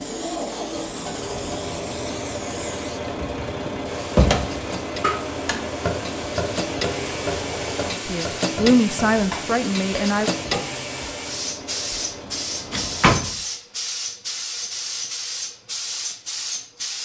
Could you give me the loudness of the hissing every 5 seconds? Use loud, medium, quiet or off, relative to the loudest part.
medium, loud, loud, loud.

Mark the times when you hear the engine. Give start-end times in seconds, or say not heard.
0.0-13.2.